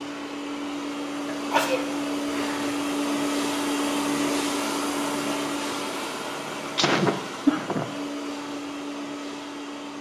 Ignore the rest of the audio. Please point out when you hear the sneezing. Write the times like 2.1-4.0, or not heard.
1.3-2.8, 6.8-7.8.